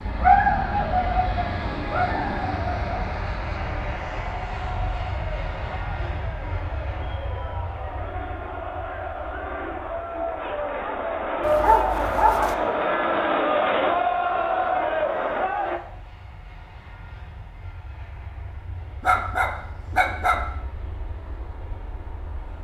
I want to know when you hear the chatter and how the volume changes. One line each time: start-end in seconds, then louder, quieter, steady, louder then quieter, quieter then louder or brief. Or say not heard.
0.0-15.8 louder.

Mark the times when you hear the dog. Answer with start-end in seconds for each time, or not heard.
0.2-3.0, 11.4-12.6, 19.0-20.4.